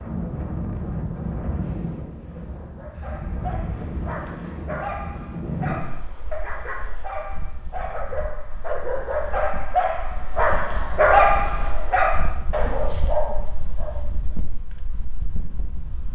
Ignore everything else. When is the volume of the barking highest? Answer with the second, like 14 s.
11 s.